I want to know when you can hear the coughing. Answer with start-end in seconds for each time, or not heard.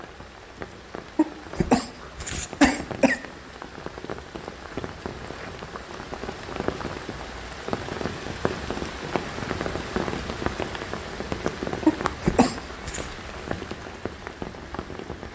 1.1-3.2, 11.8-13.1.